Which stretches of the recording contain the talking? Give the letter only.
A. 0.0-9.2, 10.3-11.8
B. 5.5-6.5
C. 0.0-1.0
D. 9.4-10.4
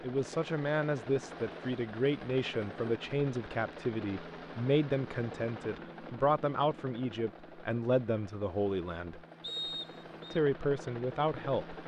A.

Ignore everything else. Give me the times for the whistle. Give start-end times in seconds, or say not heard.
9.4-10.4.